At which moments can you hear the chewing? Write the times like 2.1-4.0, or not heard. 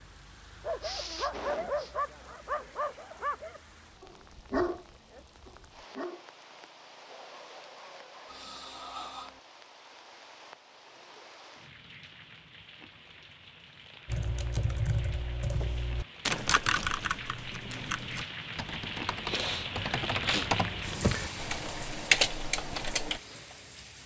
not heard.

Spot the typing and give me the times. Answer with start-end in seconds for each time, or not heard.
14.1-23.2.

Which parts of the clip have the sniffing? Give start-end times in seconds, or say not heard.
0.8-1.9, 8.2-9.4, 19.2-20.5.